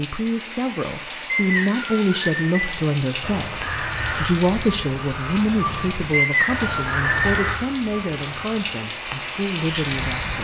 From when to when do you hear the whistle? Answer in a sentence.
The whistle can be heard from 1.2 to 2.6 s and from 6.1 to 7.2 s.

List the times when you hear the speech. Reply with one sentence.
You can hear the speech from 0.0 to 10.4 s.